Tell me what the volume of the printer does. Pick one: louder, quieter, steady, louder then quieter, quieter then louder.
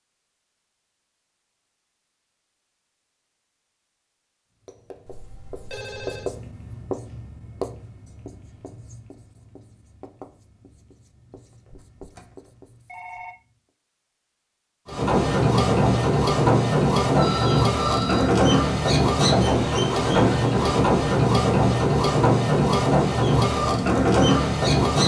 steady.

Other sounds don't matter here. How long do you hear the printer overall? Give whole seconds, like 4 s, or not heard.
10 s.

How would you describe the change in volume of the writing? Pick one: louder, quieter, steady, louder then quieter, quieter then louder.
quieter.